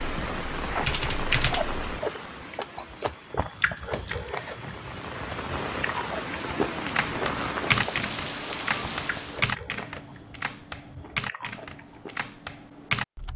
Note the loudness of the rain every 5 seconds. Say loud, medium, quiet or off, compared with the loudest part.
loud, loud, off.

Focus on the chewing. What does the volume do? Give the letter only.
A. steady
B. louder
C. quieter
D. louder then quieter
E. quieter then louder
C.